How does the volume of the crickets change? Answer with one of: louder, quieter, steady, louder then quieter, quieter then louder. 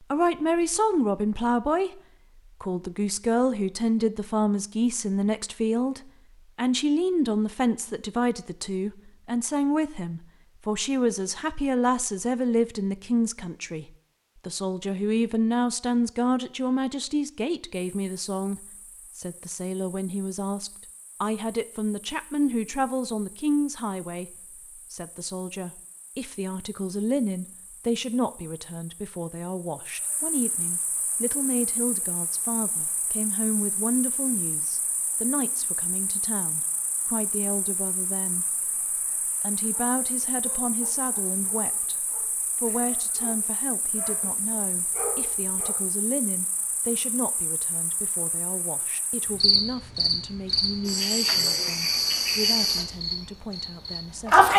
louder.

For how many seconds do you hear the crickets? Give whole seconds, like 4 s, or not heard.
37 s.